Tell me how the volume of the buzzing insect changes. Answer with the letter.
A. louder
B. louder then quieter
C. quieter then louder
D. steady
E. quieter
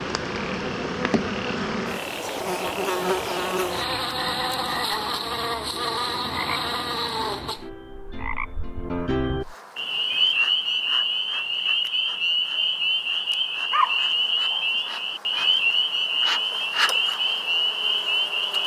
C.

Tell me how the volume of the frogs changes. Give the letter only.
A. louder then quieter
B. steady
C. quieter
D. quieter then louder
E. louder
E.